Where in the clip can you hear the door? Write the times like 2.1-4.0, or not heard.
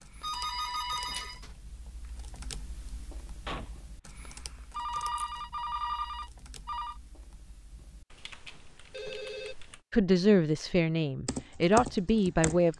3.5-3.9, 8.4-9.3.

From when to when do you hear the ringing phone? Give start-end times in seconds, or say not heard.
0.2-1.5, 4.7-7.0, 8.9-9.6.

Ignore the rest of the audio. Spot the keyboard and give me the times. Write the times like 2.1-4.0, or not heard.
0.0-9.8, 11.2-12.7.